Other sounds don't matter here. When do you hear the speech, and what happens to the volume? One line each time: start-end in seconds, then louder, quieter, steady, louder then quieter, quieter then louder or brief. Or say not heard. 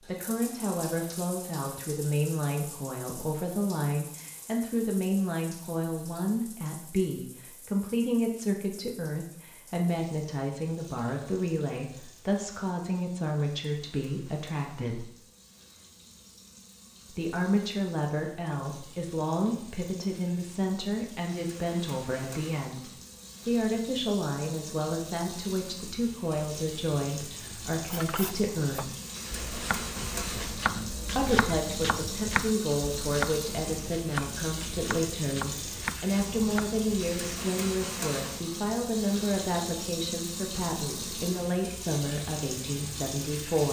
0.0-15.1 steady
17.1-28.9 steady
31.1-43.6 steady.